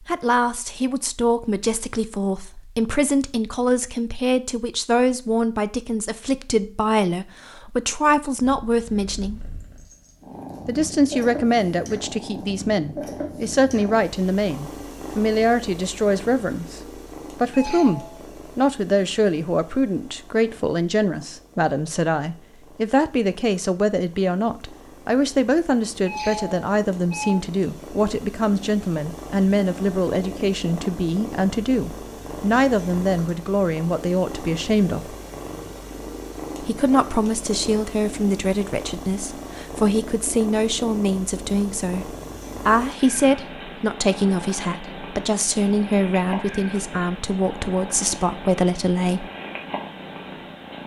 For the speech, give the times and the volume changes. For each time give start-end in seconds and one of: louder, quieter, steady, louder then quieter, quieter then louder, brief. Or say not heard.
0.0-9.5 steady
10.7-35.1 steady
36.6-49.3 steady.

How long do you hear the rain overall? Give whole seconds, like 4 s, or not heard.
not heard.